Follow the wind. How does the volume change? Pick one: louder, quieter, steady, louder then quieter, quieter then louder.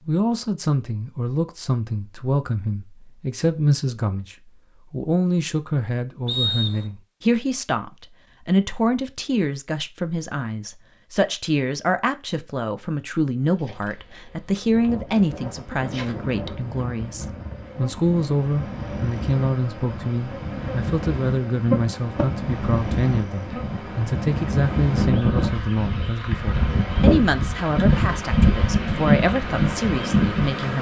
louder.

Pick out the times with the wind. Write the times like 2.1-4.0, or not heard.
14.6-30.7.